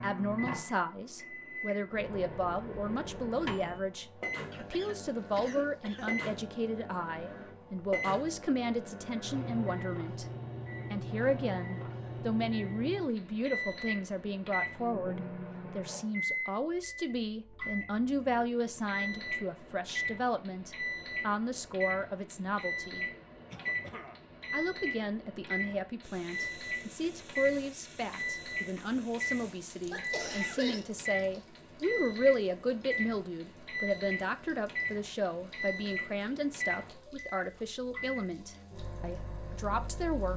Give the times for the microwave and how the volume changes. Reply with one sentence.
The microwave can be heard from 0.0 to 40.3 s, at a steady volume.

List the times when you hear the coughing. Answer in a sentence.
You can hear the coughing from 4.5 to 6.2 s, from 23.4 to 24.2 s and from 29.4 to 30.9 s.